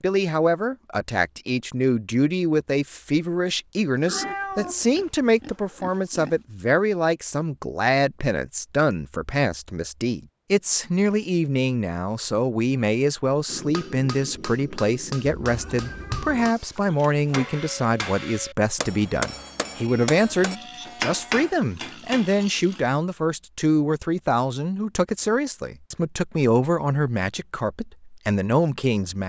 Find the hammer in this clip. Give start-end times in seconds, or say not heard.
13.4-22.3.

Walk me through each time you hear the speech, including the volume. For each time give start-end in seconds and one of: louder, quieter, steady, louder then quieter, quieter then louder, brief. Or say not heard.
0.0-29.2 steady.